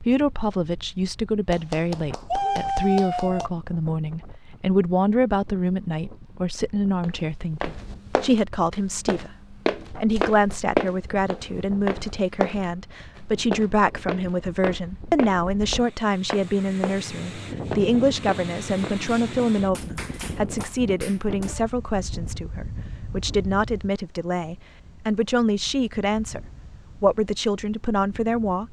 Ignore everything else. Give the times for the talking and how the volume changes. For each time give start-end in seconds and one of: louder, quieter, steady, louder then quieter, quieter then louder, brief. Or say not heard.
0.0-28.6 steady.